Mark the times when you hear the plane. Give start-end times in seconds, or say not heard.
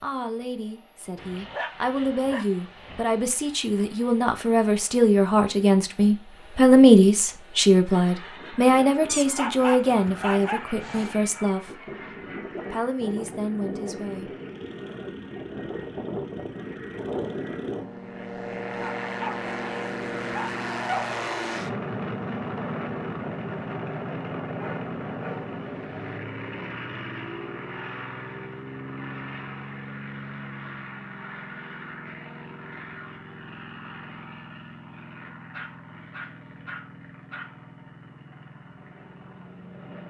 0.1-40.0.